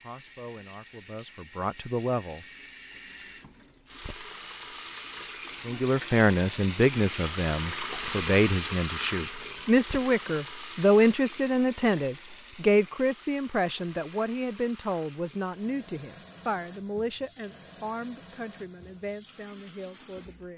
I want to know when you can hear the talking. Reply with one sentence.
You can hear the talking from 0.0 to 3.0 s and from 5.7 to 20.5 s.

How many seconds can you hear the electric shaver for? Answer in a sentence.
You can't hear the electric shaver here.